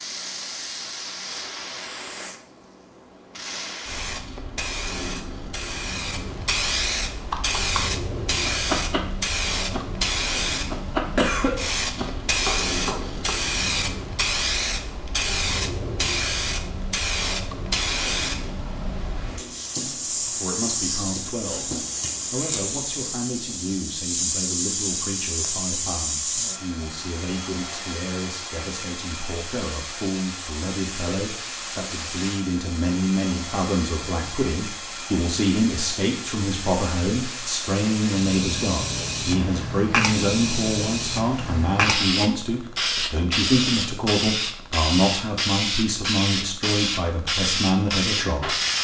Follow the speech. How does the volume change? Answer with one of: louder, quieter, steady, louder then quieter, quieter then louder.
louder.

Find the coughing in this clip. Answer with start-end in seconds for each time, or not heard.
11.2-11.6.